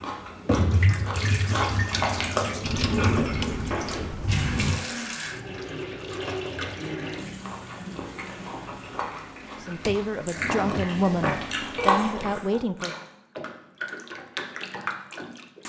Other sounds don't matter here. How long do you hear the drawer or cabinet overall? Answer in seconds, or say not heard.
3 s.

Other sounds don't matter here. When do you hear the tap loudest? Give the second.
1 s.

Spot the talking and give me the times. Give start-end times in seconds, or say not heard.
9.6-12.9.